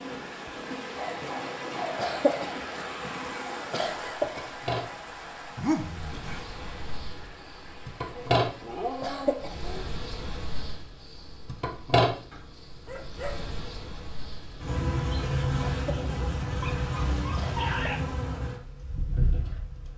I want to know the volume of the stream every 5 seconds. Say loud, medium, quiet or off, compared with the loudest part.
loud, medium, off, off.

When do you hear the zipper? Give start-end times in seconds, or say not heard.
not heard.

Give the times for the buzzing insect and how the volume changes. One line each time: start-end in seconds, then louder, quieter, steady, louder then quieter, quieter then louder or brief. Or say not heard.
0.0-19.9 louder.